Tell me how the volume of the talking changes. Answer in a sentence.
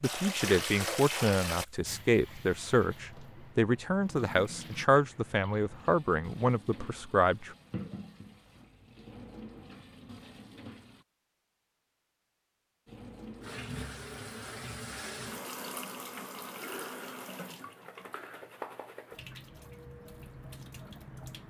The volume of the talking stays about the same.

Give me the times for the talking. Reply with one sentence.
You can hear the talking from 0.0 to 7.5 s.